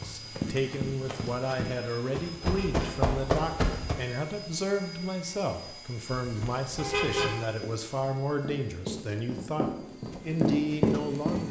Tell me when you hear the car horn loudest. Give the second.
7 s.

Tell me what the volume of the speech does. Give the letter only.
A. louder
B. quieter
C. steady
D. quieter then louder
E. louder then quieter
C.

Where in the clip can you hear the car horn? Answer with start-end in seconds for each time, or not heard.
2.4-3.1, 6.8-7.5.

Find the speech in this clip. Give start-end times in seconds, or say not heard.
0.0-11.4.